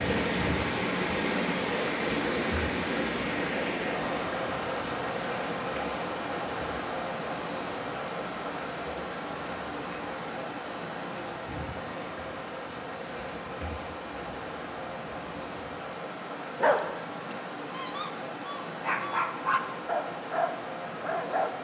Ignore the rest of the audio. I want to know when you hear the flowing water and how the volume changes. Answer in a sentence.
You can hear the flowing water from 0.0 to 21.5 s, getting quieter.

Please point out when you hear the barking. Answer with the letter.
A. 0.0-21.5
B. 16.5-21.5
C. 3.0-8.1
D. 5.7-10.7
B.